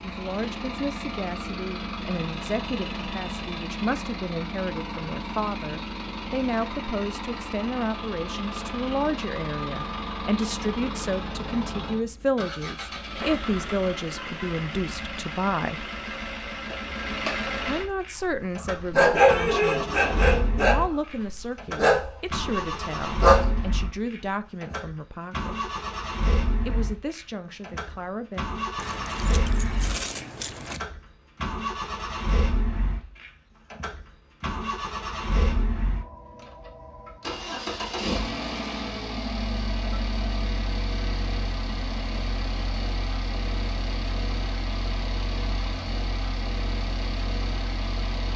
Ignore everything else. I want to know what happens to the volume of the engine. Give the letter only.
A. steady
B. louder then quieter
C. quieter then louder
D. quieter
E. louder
A.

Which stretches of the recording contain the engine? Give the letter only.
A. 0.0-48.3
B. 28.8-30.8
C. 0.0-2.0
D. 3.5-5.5
A.